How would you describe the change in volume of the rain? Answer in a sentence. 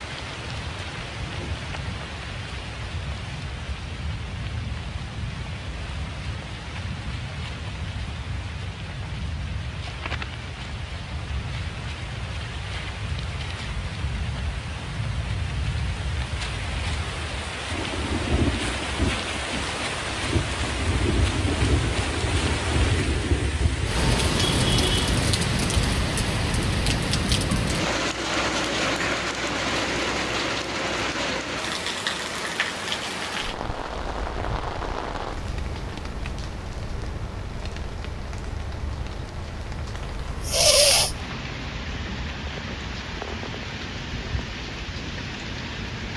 The loudness of the rain goes up, then down.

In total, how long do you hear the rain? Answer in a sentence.
You can hear the rain for 46 seconds altogether.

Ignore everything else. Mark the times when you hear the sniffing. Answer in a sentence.
You can hear the sniffing from 40.4 to 41.1 s.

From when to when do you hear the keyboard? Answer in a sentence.
You can't hear the keyboard here.